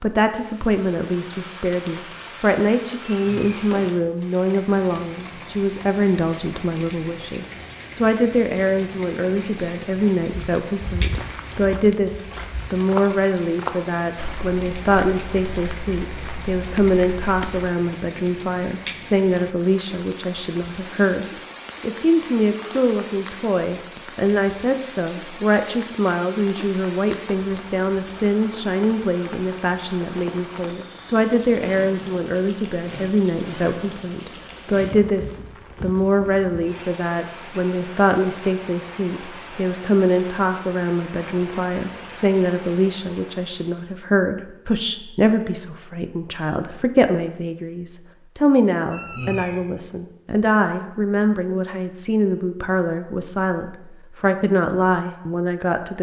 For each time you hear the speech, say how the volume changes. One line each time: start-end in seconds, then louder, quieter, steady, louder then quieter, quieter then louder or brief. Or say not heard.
0.0-55.9 steady.